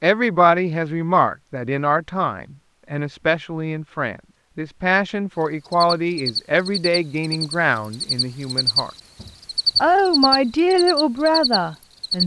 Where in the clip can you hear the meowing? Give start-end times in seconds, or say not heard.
not heard.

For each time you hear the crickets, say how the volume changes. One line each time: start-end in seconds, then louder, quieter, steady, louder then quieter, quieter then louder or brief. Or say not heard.
5.7-12.2 louder then quieter.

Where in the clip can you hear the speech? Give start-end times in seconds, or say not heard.
0.0-8.9, 9.8-12.2.